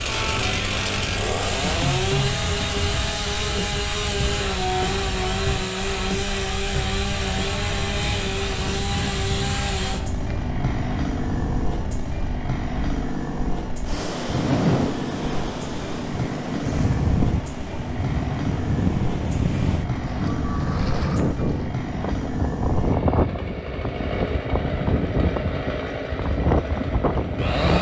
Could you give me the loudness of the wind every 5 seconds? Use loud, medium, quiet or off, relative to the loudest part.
medium, medium, loud, loud, loud, loud.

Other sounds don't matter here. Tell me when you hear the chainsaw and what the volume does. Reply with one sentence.
The chainsaw can be heard from 0.0 to 27.7 s, getting quieter.